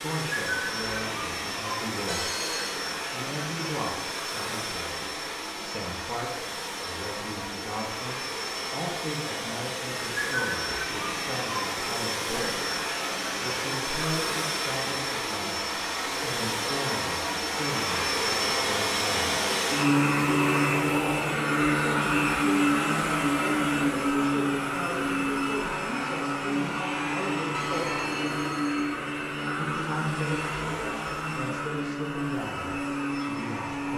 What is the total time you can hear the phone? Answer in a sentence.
The phone can be heard for 2 seconds in total.